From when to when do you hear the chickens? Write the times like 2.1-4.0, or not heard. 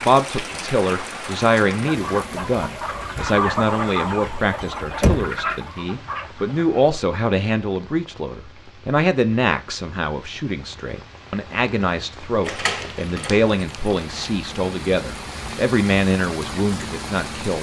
0.9-6.9.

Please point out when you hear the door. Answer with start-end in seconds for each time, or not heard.
4.6-5.5, 12.4-14.3.